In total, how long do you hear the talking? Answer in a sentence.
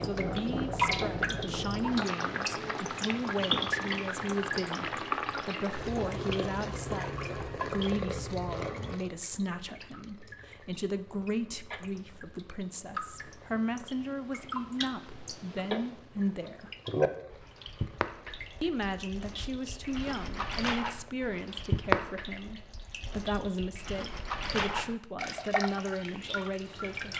The talking can be heard for 25 seconds in total.